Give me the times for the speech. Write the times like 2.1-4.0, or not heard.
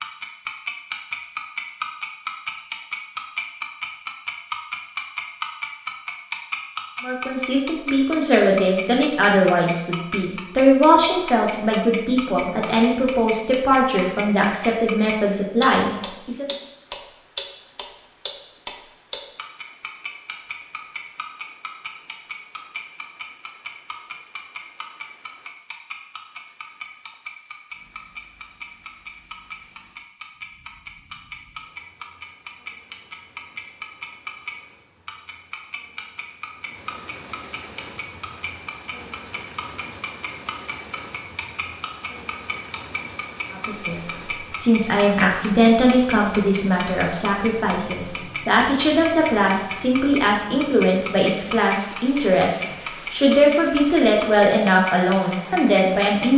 7.0-16.4, 43.5-56.3.